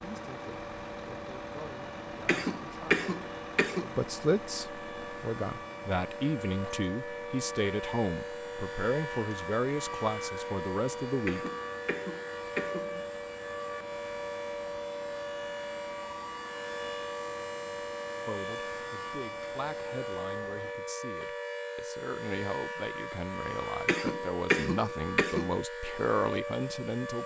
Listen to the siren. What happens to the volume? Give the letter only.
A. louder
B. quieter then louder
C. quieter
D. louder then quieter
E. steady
A.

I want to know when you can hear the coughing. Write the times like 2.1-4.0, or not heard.
2.2-3.9, 11.2-13.0, 23.9-25.6.